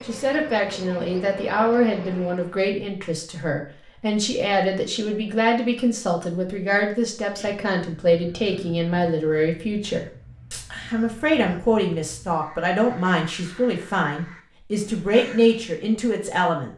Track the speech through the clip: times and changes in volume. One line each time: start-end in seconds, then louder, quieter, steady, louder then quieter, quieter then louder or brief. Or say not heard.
0.1-16.7 steady.